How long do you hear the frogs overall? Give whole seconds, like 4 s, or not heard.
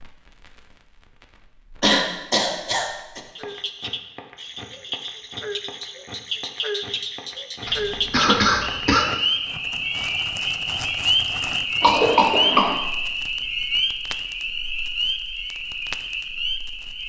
14 s.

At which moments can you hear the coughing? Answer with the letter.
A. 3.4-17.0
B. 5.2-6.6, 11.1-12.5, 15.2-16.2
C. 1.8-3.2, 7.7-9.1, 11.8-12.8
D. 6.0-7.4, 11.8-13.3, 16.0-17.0
C.